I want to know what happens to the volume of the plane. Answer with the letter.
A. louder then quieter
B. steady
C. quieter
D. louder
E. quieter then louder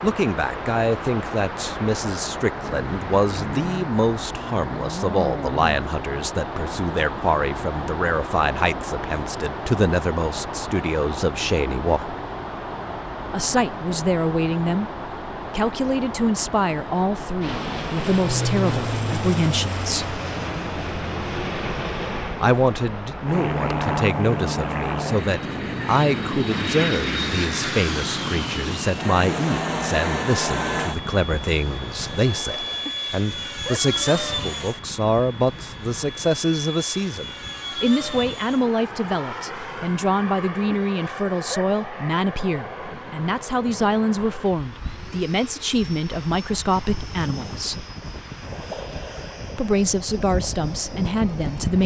C.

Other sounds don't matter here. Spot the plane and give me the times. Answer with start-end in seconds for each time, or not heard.
17.2-51.8.